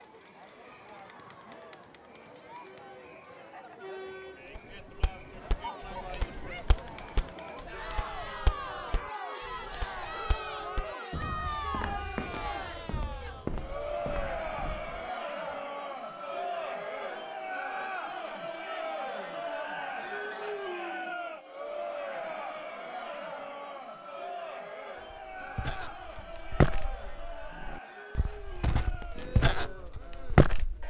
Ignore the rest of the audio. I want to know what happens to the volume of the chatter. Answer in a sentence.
The volume of the chatter goes up, then down.